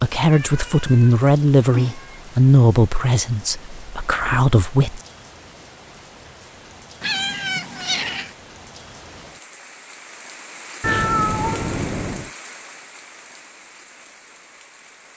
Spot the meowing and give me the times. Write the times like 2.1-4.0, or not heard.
0.3-2.2, 7.0-8.3, 10.8-12.3.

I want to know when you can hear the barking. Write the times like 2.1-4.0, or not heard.
not heard.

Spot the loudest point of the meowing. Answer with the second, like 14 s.
11 s.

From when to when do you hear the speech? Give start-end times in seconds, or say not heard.
0.0-5.0.